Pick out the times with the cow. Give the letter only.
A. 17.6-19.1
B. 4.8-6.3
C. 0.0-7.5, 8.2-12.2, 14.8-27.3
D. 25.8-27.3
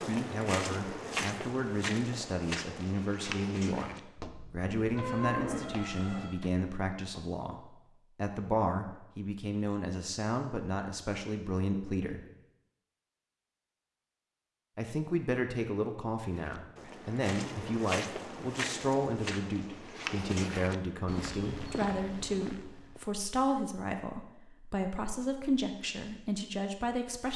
B.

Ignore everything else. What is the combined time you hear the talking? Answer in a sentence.
You can hear the talking for 24 seconds altogether.